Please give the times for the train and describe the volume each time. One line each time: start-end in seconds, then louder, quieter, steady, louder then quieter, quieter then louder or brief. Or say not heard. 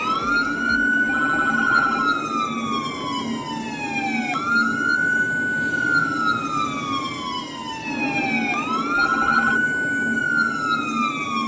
0.0-11.4 steady.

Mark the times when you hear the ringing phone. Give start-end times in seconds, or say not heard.
1.1-2.2, 8.9-9.6.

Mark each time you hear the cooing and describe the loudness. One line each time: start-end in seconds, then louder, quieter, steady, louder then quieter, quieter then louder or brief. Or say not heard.
not heard.